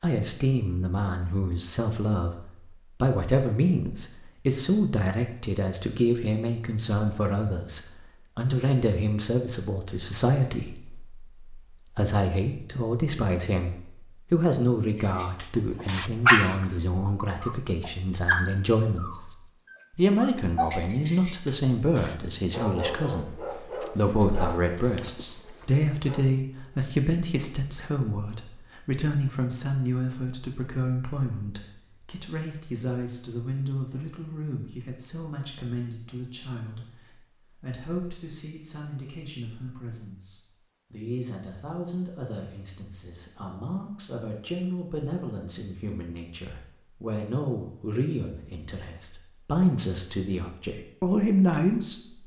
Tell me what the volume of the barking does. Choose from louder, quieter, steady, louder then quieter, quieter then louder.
quieter.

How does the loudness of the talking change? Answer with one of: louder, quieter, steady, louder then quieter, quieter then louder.
quieter then louder.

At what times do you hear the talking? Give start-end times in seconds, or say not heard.
0.0-52.2.